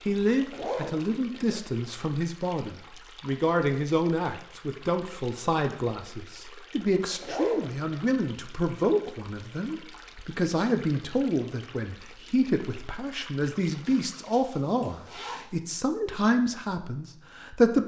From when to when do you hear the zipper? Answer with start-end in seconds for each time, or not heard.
0.1-1.6, 6.8-7.7, 13.8-15.4.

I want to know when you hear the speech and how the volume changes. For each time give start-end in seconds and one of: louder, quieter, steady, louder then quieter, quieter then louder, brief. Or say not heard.
0.1-17.8 steady.